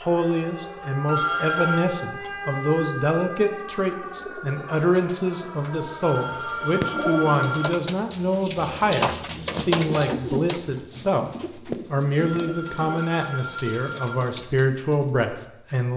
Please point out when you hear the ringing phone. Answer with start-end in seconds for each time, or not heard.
1.1-1.9, 6.0-7.8, 12.2-14.2.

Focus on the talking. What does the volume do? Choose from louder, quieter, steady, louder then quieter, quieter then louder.
steady.